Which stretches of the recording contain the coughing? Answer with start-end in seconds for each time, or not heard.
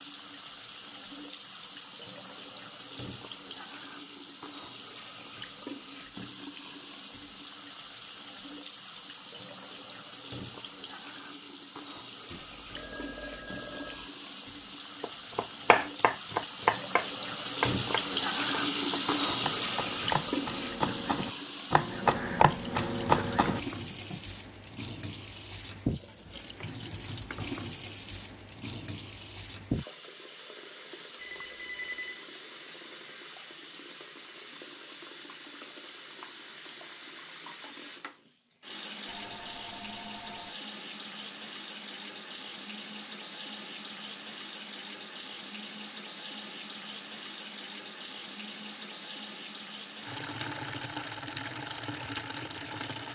not heard.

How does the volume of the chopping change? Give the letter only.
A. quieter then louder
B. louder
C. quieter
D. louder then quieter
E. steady
A.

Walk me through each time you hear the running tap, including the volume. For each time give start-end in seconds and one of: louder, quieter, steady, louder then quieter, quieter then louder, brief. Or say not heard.
0.0-53.1 louder then quieter.